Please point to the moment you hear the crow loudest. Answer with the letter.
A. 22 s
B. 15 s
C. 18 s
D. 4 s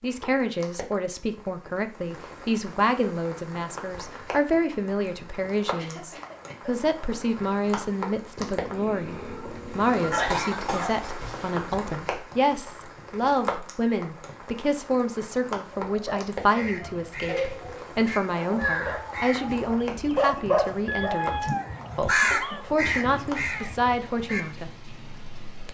A.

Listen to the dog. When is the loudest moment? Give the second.
20 s.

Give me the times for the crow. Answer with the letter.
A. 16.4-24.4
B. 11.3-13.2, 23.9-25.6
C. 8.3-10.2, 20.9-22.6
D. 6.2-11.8
A.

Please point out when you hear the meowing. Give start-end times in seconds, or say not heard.
8.3-10.2, 20.9-22.6.